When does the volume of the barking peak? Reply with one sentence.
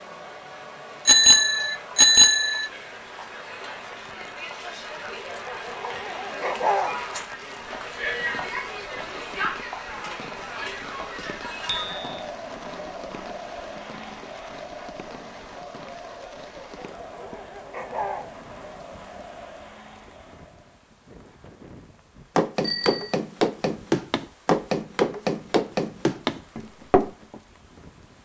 The loudest moment of the barking is at 7 seconds.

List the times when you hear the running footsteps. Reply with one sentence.
The running footsteps can be heard from 22.4 to 27.4 s.